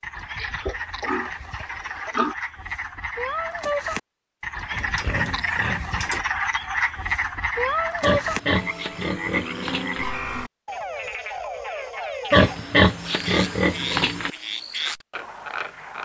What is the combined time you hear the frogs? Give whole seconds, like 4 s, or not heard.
16 s.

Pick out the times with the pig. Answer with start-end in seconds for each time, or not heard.
0.3-2.4, 4.7-6.2, 8.0-10.1, 12.3-14.3.